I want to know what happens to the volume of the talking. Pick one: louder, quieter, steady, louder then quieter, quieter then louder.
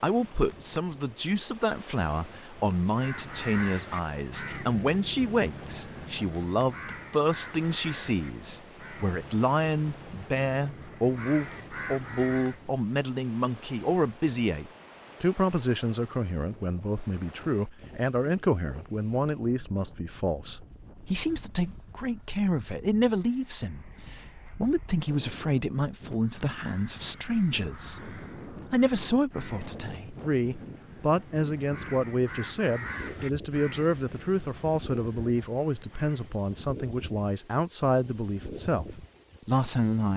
steady.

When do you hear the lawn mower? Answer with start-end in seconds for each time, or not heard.
not heard.